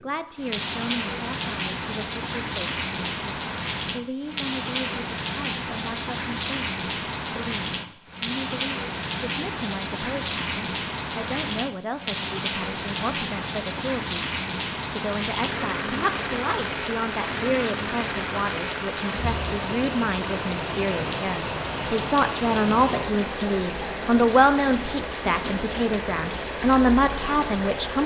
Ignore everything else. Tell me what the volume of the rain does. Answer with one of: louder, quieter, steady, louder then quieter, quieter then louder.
steady.